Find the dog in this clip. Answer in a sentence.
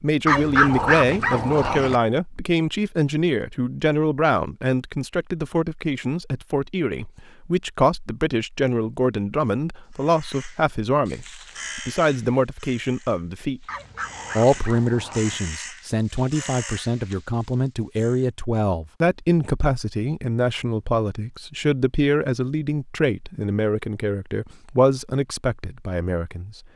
You can hear the dog from 0.2 to 1.9 s and from 13.7 to 15.4 s.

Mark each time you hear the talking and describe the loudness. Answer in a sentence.
You can hear the talking from 0.0 to 13.7 s, at a steady volume; and from 14.3 to 26.6 s, at a steady volume.